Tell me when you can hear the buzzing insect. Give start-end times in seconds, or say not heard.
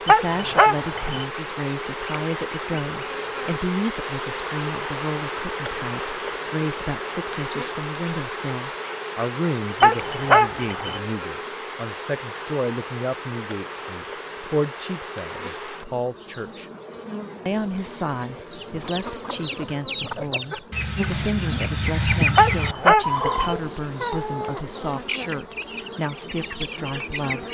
0.0-27.4.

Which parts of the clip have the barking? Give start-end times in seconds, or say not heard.
0.1-1.2, 9.8-11.0, 22.4-23.6.